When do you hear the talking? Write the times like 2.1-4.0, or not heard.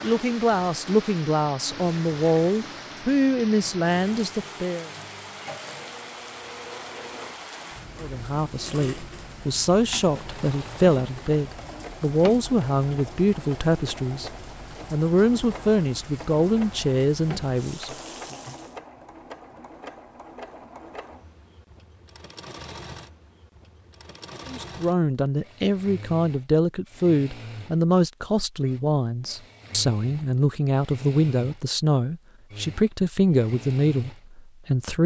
0.0-4.9, 8.0-14.3, 14.9-18.4, 24.4-35.0.